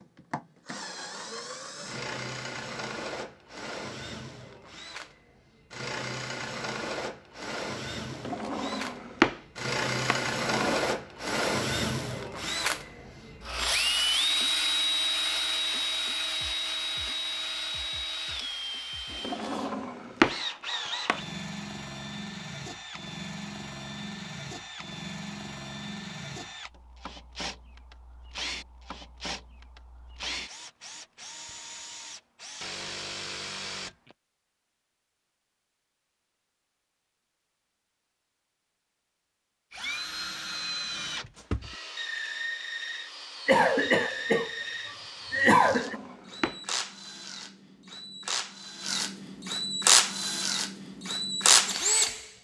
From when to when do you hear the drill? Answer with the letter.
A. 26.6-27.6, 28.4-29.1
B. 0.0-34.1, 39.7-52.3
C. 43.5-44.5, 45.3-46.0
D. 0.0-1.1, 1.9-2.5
B.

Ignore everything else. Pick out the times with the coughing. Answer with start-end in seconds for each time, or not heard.
43.5-44.5, 45.3-46.0.